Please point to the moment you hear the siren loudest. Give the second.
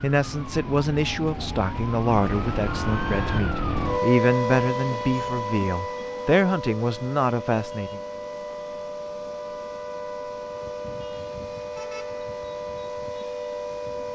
4 s.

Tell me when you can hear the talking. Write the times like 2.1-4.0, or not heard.
0.0-8.0.